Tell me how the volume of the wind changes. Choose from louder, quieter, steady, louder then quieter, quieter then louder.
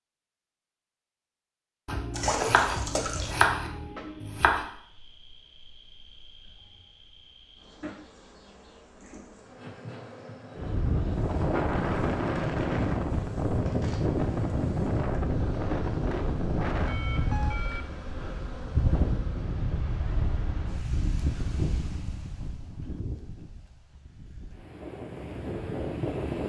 quieter.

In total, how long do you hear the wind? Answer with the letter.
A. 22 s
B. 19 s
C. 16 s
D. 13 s
C.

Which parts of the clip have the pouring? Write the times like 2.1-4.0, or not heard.
2.1-3.4.